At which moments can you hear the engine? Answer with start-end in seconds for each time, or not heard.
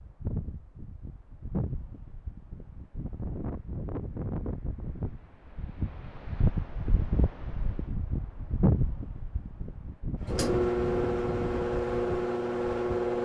10.2-13.2.